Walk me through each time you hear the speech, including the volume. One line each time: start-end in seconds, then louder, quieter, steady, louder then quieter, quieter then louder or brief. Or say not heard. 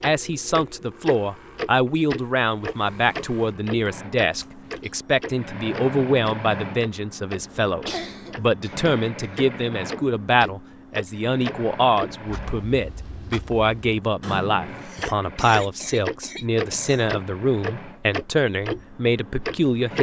0.0-19.9 steady.